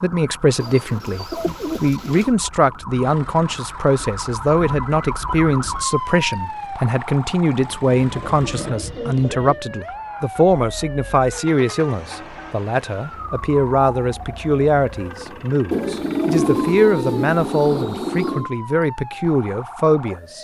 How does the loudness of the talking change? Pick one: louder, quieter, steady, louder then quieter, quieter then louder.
steady.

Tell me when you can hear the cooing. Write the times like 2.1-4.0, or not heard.
0.6-2.3, 7.9-9.6, 15.7-18.5.